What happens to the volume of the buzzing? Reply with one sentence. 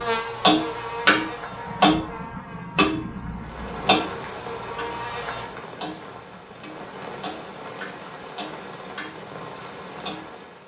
The loudness of the buzzing goes down, then up.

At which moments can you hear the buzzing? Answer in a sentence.
The buzzing can be heard from 0.0 to 5.5 s.